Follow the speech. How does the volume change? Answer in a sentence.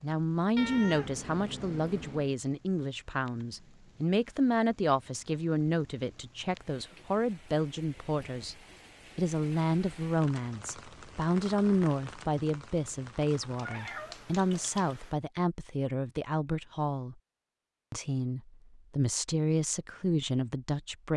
The volume of the speech stays about the same.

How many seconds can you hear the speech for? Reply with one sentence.
The speech can be heard for 20 seconds in total.